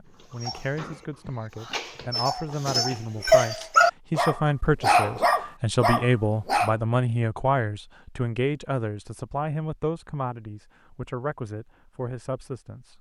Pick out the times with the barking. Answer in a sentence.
You can hear the barking from 0.2 to 6.8 s.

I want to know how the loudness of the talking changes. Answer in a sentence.
The loudness of the talking goes up, then down.